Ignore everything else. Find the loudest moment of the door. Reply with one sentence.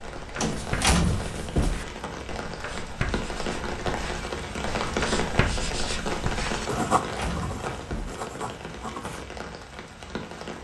The loudest moment of the door is at 1 second.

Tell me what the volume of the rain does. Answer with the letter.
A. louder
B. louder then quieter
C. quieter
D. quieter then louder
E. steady
B.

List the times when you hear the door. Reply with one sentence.
The door can be heard from 0.4 to 1.9 s and from 7.0 to 8.2 s.